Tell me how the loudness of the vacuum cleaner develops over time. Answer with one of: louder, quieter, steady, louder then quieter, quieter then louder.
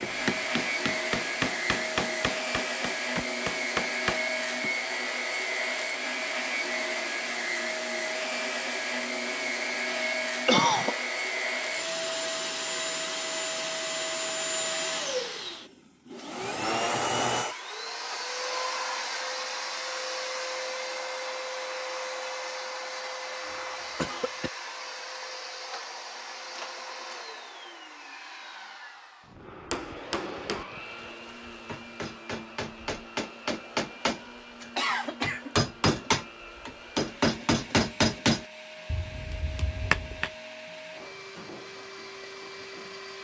quieter.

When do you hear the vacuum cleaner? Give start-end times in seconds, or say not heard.
0.0-43.1.